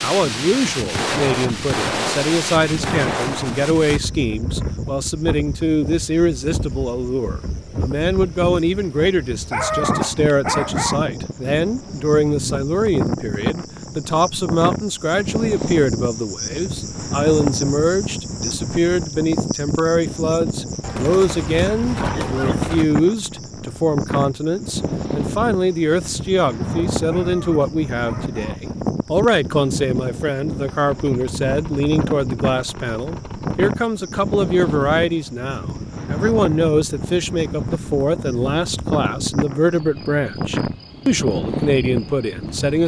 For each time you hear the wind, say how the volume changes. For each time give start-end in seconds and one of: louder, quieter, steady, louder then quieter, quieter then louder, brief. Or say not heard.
0.0-42.8 steady.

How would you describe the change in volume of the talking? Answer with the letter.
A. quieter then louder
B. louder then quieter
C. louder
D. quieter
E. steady
E.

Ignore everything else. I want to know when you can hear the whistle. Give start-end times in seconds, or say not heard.
not heard.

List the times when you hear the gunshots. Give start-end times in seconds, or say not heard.
0.9-3.8, 20.8-22.9, 30.6-33.7.